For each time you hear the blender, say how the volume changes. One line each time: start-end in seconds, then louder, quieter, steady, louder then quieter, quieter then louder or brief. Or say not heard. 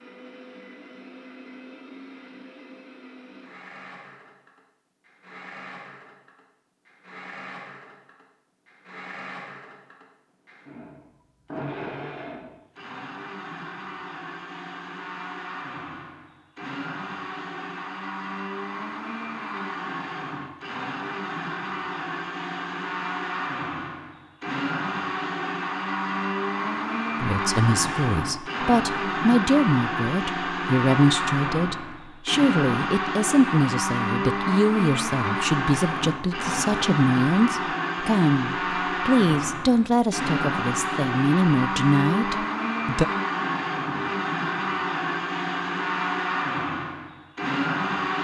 0.0-48.2 louder.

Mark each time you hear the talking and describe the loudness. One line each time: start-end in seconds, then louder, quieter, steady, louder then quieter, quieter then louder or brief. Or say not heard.
27.2-43.0 steady.